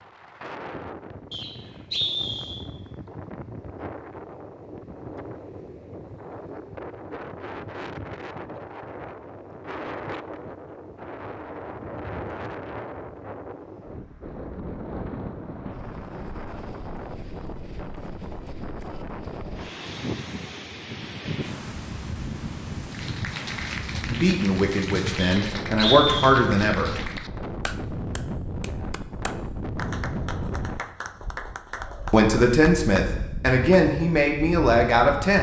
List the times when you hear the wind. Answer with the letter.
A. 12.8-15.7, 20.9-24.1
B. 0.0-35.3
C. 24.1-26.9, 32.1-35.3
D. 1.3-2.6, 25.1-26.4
B.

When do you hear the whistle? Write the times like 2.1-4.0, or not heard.
1.3-2.6, 25.1-26.4.